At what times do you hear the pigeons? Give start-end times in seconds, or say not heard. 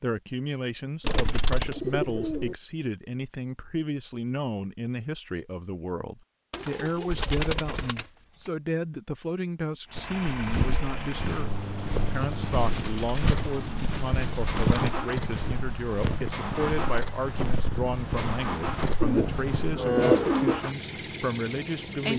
1.0-2.5, 6.5-8.1, 12.1-14.9, 19.0-20.6.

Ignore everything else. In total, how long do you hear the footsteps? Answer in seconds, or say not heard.
10 s.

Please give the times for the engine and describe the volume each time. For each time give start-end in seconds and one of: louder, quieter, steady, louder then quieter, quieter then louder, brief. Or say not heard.
9.8-22.1 steady.